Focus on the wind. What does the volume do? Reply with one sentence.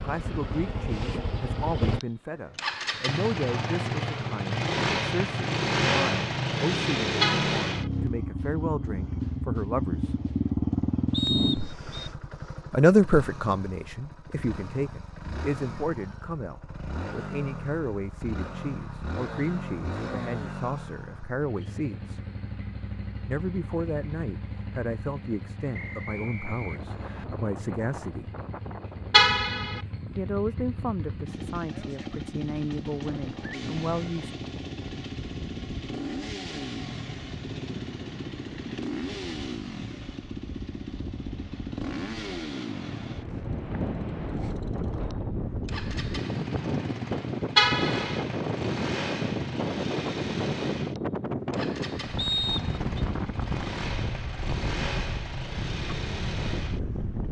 The loudness of the wind goes up.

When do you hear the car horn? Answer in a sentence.
The car horn can be heard from 7.2 to 7.9 s, from 29.1 to 29.8 s and from 47.5 to 48.2 s.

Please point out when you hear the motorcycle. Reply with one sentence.
The motorcycle can be heard from 0.0 to 57.2 s.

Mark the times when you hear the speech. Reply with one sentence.
You can hear the speech from 0.0 to 10.2 s, from 12.7 to 22.2 s, from 23.2 to 28.2 s and from 30.1 to 34.3 s.